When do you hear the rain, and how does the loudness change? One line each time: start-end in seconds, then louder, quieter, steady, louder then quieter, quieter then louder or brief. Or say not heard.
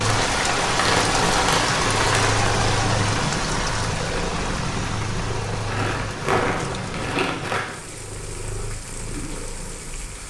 0.0-10.2 quieter.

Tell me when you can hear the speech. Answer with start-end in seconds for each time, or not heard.
not heard.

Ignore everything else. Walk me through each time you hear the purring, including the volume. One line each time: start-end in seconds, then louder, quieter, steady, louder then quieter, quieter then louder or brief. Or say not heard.
0.0-10.2 quieter.